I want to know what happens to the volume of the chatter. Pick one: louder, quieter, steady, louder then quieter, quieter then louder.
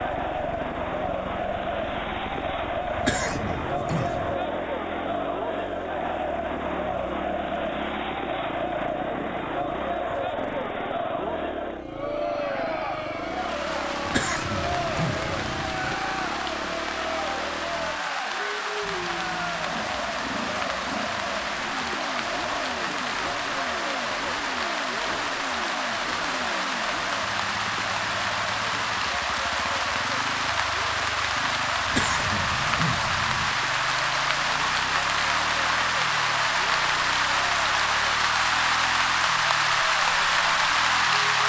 quieter.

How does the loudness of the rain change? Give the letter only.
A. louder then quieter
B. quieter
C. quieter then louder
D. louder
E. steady
D.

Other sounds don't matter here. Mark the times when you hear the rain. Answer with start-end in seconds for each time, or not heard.
13.2-41.4.